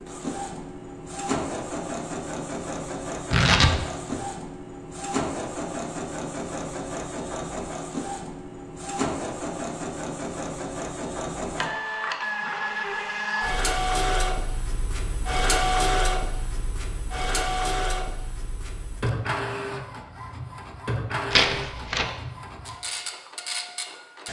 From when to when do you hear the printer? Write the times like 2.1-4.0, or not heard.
0.0-24.2.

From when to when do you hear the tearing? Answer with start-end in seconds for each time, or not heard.
3.3-4.2, 21.3-22.1.